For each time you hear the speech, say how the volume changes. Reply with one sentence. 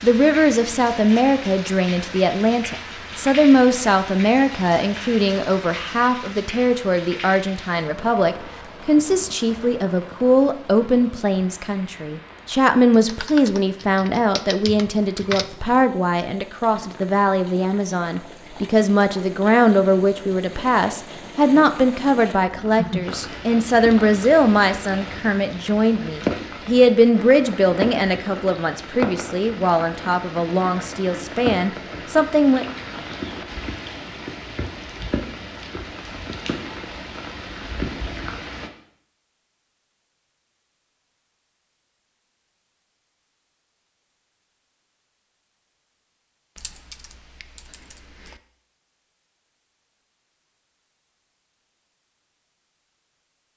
You can hear the speech from 0.0 to 32.6 s, at a steady volume.